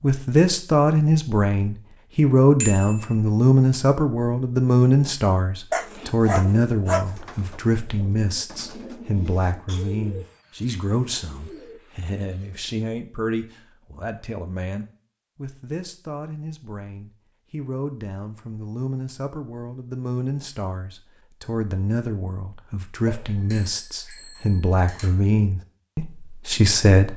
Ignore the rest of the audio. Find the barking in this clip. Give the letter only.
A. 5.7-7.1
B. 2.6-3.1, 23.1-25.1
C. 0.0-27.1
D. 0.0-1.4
A.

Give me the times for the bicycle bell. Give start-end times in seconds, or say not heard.
2.6-3.1, 23.1-25.1.